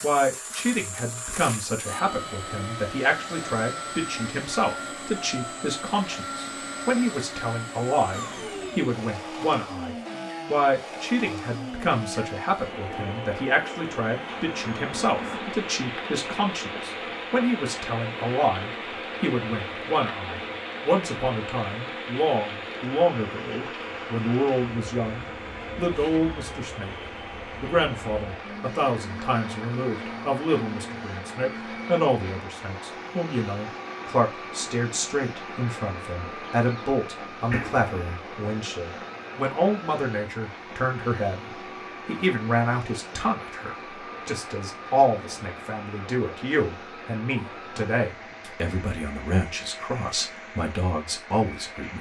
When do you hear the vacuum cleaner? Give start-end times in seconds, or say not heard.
0.0-51.9.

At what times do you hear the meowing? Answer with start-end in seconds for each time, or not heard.
37.5-38.1.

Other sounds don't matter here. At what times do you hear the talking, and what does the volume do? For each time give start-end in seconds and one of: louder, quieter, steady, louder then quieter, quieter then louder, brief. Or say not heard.
0.0-51.9 steady.